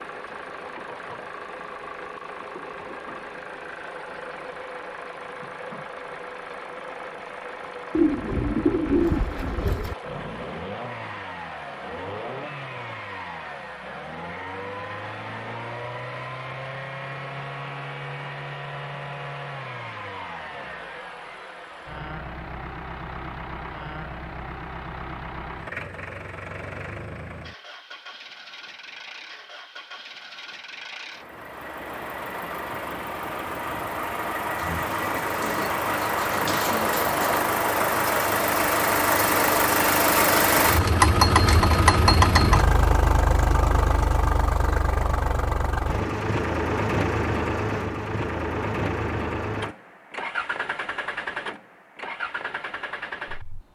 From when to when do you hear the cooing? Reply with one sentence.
The cooing can be heard from 7.9 to 9.9 s and from 34.5 to 37.5 s.